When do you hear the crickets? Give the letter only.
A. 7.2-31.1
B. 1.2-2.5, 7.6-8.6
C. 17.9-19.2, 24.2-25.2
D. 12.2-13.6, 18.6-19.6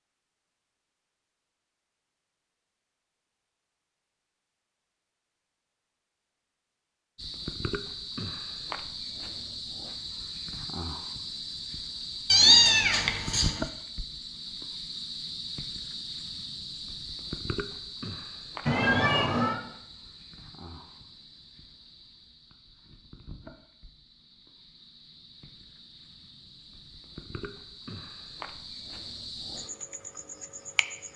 A.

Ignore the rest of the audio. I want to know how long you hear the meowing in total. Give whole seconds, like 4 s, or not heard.
2 s.